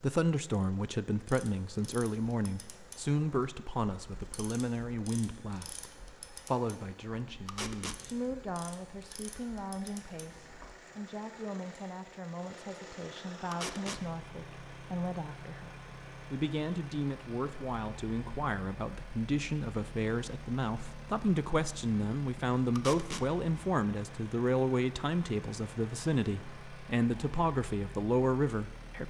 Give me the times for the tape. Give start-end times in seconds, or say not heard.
7.5-8.0, 13.5-14.0, 22.8-23.2.